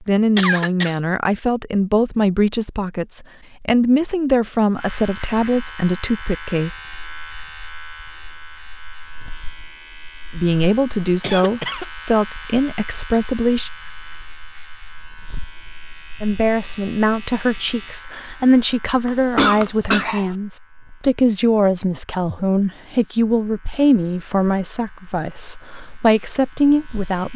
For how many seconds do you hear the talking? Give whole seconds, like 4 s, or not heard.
21 s.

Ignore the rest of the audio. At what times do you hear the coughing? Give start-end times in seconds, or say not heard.
0.3-1.0, 11.2-11.8, 19.1-20.4.